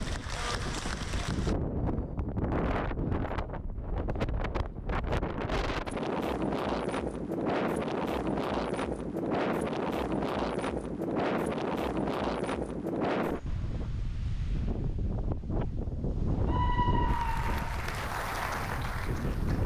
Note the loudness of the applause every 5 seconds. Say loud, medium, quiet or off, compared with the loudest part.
loud, off, off, loud.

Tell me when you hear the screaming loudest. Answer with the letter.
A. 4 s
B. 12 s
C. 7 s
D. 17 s
D.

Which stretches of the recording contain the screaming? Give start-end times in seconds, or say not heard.
16.4-17.9.